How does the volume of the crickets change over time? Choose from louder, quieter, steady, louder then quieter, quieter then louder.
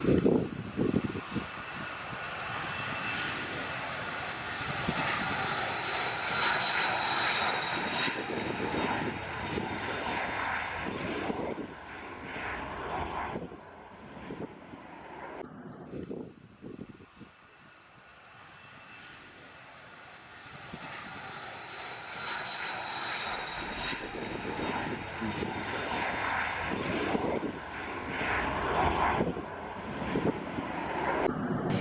louder then quieter.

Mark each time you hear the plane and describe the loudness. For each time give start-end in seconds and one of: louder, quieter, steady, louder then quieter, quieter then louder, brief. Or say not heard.
0.0-31.7 quieter then louder.